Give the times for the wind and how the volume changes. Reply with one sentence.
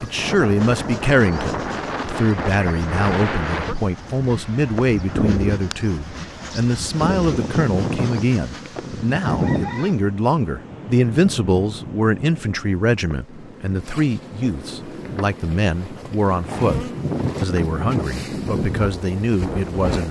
You can hear the wind from 0.0 to 20.0 s, getting quieter then louder.